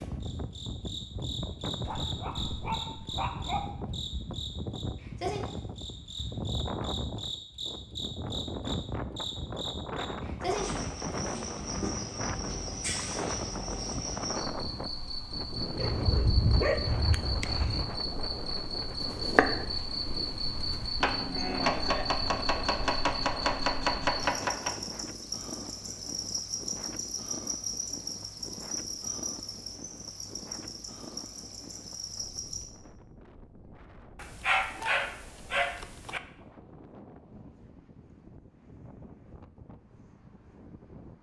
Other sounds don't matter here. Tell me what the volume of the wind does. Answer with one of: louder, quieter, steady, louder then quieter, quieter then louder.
quieter.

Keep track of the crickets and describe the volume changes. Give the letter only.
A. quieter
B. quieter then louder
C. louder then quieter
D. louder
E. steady
E.